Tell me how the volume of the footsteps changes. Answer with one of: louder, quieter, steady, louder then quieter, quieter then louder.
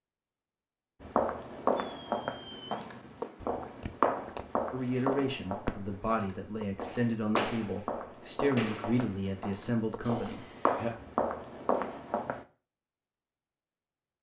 quieter then louder.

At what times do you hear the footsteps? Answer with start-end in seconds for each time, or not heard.
1.0-12.4.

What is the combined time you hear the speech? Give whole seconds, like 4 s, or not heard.
6 s.